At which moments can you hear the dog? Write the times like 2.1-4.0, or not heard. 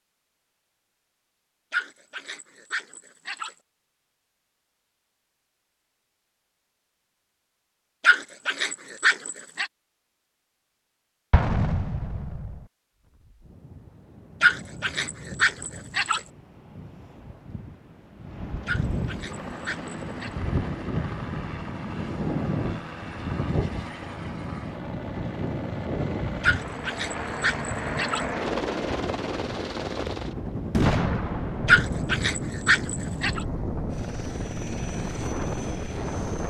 1.7-3.5, 8.0-9.7, 14.4-16.2, 18.6-20.3, 26.4-28.2, 31.6-33.4.